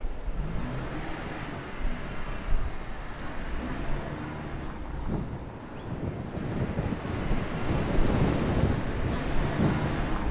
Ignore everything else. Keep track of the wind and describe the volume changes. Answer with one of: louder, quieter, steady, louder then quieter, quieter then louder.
louder.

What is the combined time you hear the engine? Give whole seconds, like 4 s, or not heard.
10 s.